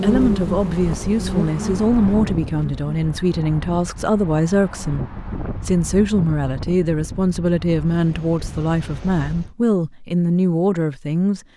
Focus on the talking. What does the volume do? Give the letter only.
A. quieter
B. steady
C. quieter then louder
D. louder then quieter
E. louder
B.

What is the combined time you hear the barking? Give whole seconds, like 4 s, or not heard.
not heard.